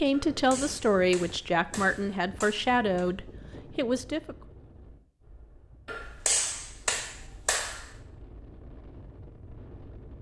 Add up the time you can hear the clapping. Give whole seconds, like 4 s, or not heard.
5 s.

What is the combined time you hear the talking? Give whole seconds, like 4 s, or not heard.
4 s.